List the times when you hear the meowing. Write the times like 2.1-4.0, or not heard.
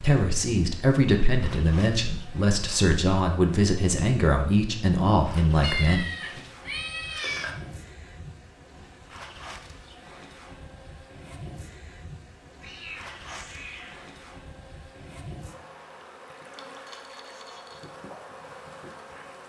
5.6-7.5, 12.6-14.1.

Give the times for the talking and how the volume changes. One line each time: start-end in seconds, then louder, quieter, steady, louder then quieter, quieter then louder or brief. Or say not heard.
0.0-6.4 steady.